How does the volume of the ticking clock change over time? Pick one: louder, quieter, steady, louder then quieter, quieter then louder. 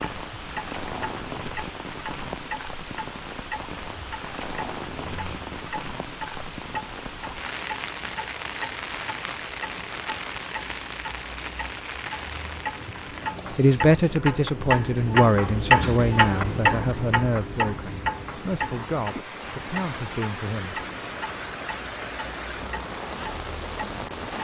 louder then quieter.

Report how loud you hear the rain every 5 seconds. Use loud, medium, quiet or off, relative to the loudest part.
loud, loud, loud, medium, loud.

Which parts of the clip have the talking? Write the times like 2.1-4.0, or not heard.
13.5-20.8.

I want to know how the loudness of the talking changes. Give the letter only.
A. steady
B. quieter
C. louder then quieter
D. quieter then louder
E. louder
B.